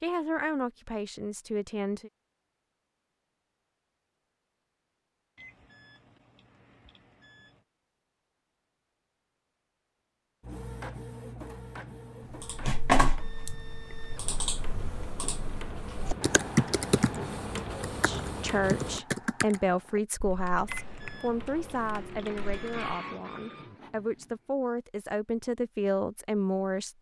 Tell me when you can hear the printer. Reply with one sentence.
You can hear the printer from 10.4 to 19.0 s and from 20.6 to 24.5 s.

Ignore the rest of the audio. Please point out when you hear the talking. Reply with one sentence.
You can hear the talking from 0.0 to 2.1 s and from 17.9 to 26.9 s.